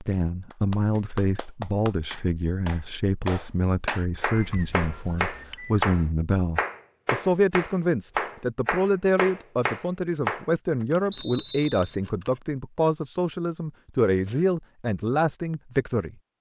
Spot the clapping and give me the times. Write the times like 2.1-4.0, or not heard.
0.5-10.4.